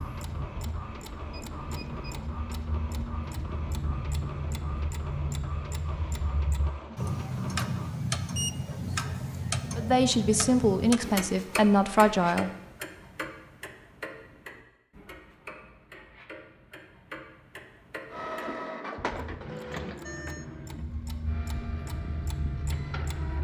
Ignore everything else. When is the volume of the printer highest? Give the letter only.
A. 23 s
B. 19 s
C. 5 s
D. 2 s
B.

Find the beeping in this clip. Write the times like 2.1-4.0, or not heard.
0.8-2.2, 8.3-9.4, 19.7-20.4.